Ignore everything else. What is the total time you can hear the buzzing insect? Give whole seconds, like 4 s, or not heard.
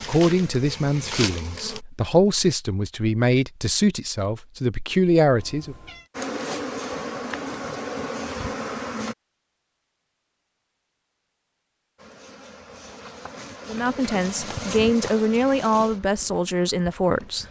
10 s.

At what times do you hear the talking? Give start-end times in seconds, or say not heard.
0.1-5.8, 13.7-17.4.